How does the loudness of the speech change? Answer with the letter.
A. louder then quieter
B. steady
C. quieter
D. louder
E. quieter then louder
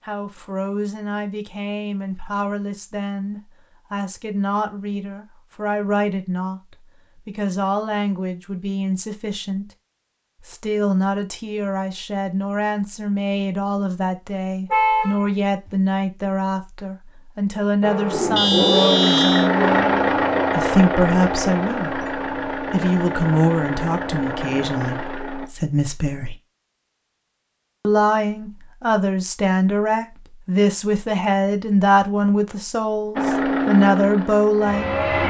D.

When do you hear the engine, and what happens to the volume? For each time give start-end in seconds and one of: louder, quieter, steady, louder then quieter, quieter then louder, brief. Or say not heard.
17.8-25.5 quieter
33.1-35.2 brief.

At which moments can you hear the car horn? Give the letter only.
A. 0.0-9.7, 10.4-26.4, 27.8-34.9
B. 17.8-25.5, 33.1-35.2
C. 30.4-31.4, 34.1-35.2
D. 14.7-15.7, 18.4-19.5
D.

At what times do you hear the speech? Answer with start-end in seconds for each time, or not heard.
0.0-9.7, 10.4-26.4, 27.8-34.9.